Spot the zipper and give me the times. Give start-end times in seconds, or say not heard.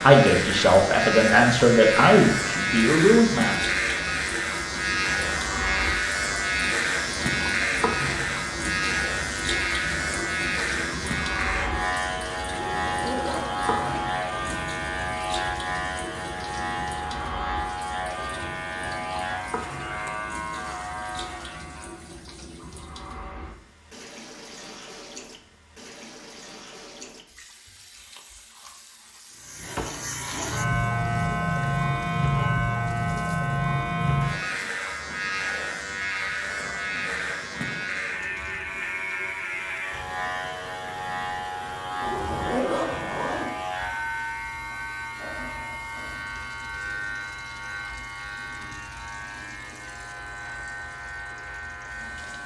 12.6-14.1, 42.0-43.5.